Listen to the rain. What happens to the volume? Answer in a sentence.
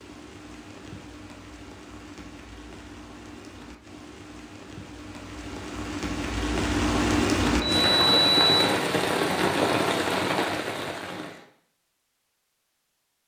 The loudness of the rain goes up.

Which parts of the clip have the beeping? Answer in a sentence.
The beeping can be heard from 7.5 to 8.8 s.